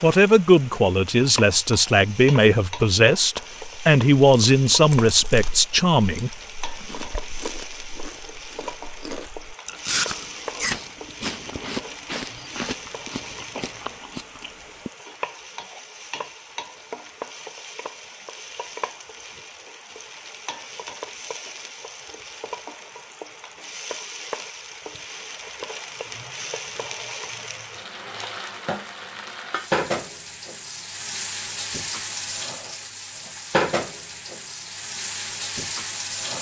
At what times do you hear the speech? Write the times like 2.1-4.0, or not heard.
0.0-6.3.